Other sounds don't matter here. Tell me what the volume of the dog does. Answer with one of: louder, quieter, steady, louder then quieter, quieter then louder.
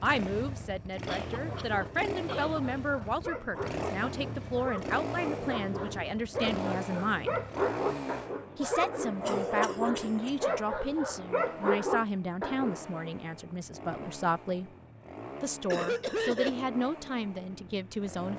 louder.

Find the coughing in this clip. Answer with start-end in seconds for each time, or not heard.
1.1-2.6, 9.2-10.3, 15.7-16.6.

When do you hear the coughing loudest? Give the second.
16 s.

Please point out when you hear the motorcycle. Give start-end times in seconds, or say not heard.
0.0-18.3.